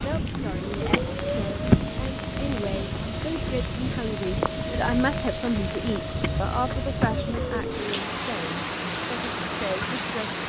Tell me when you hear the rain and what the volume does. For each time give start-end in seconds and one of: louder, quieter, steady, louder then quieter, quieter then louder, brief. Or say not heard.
0.0-10.4 steady.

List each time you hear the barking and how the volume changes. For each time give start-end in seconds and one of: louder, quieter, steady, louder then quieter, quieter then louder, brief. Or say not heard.
not heard.